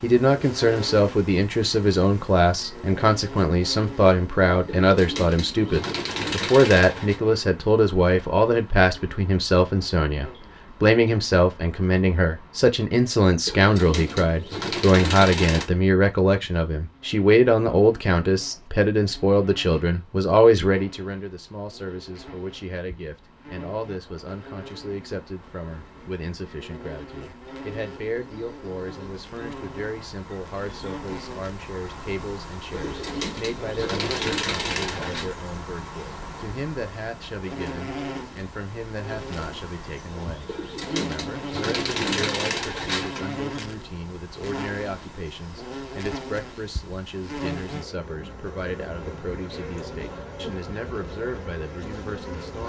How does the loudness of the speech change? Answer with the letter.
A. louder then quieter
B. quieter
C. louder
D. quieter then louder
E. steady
B.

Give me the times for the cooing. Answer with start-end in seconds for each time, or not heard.
4.7-7.2, 13.4-15.7, 32.7-35.3, 40.5-43.4.